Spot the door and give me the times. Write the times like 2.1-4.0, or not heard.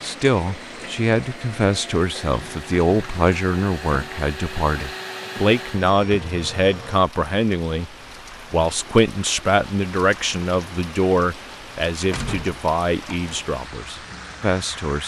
12.1-13.4.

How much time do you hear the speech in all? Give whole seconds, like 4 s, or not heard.
15 s.